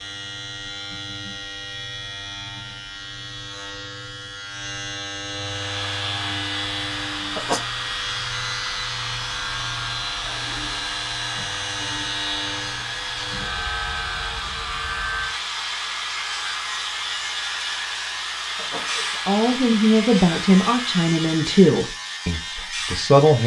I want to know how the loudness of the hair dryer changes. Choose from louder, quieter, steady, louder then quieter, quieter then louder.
steady.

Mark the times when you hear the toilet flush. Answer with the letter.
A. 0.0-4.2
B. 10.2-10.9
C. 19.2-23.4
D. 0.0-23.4
B.